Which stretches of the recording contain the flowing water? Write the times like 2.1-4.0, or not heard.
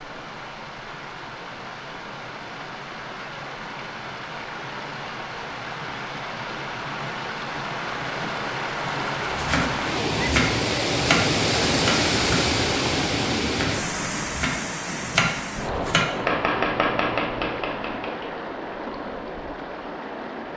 0.0-20.5.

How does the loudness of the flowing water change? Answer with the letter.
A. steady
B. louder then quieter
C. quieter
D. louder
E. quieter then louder
B.